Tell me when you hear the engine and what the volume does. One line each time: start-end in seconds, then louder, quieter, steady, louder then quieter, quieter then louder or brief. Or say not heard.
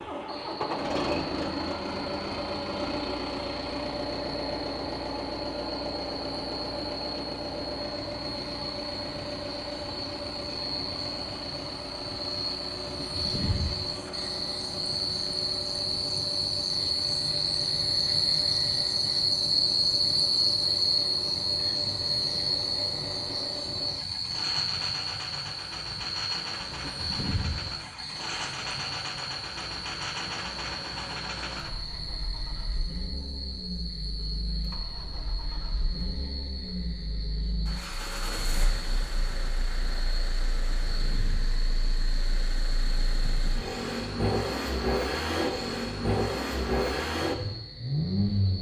0.0-48.5 quieter then louder.